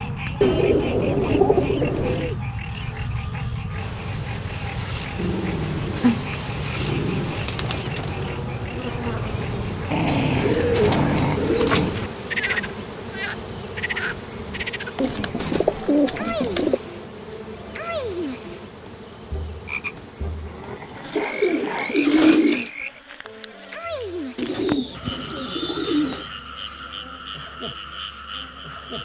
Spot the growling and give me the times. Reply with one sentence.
The growling can be heard from 5.2 to 7.5 s, from 9.9 to 11.9 s and from 19.7 to 21.9 s.